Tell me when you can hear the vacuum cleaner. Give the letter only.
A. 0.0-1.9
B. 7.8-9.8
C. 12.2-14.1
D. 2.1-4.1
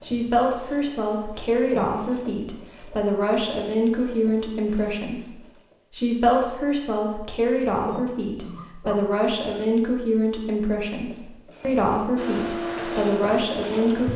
C.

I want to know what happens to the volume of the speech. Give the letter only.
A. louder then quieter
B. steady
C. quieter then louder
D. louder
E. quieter
B.